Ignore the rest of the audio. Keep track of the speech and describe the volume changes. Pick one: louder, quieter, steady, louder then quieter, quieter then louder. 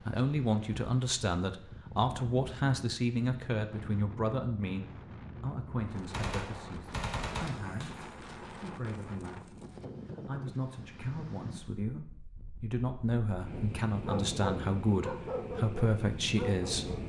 quieter then louder.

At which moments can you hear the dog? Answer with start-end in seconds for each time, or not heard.
14.0-17.0.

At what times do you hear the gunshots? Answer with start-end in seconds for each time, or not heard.
6.1-8.4.